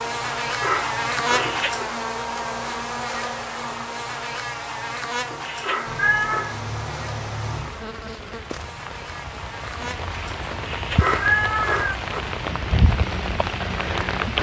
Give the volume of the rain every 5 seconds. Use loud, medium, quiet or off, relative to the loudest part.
off, medium, loud.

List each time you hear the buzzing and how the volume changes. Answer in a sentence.
You can hear the buzzing from 0.0 to 14.2 s, getting quieter.